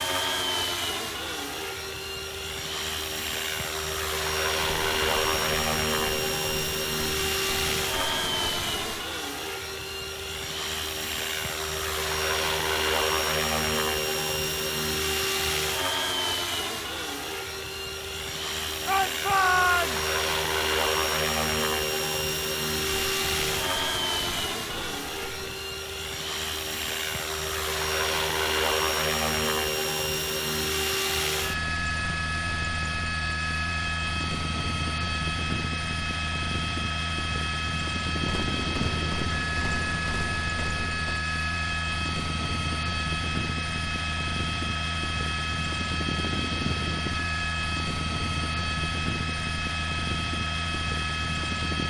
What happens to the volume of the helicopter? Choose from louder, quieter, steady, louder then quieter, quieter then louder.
steady.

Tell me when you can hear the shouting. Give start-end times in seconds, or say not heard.
18.9-20.1.